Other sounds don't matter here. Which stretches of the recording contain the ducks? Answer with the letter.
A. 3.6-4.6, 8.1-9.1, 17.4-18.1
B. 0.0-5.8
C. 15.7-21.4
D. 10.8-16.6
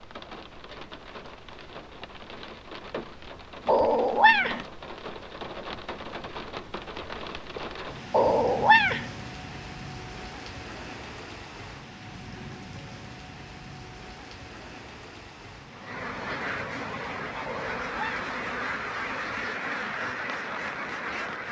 C.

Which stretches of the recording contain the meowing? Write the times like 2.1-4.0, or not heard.
3.6-4.6, 8.1-9.1, 17.4-18.1.